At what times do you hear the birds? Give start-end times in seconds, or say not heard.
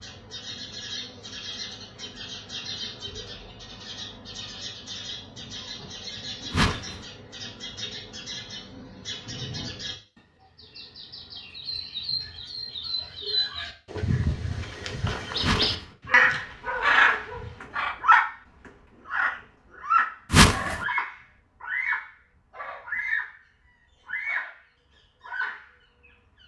0.0-23.4, 24.1-24.6, 25.2-26.4.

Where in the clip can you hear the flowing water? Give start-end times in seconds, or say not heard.
not heard.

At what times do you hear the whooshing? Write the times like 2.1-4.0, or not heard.
6.5-7.0, 15.4-15.9, 20.3-20.8.